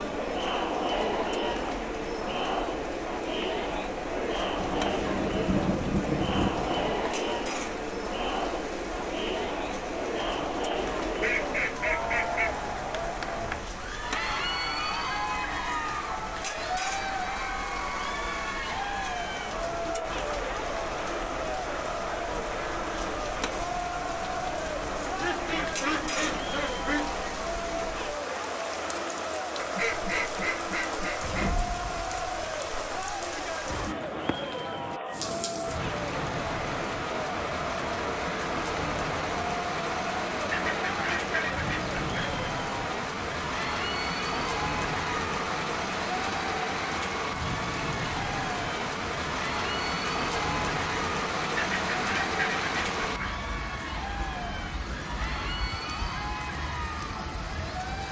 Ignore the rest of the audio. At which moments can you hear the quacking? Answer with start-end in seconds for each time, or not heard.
4.5-7.0, 11.2-12.5, 25.1-27.1, 29.6-31.5, 40.5-42.4, 51.5-53.5.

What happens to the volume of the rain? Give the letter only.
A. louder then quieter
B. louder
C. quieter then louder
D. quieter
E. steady
B.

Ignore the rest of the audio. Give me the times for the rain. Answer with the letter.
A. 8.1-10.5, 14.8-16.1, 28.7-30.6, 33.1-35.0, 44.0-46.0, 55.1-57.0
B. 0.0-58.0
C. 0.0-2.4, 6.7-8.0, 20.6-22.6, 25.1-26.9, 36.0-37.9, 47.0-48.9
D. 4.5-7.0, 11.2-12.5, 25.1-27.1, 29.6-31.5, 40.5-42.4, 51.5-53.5
B.